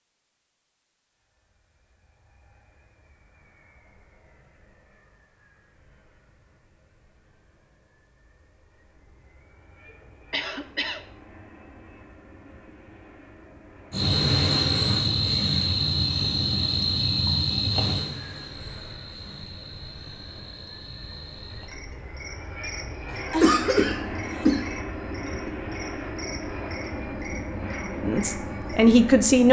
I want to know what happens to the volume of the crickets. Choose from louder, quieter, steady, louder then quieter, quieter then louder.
quieter.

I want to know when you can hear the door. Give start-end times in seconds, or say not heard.
not heard.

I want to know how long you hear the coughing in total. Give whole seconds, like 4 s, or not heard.
2 s.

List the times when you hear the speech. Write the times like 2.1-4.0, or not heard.
28.0-29.4.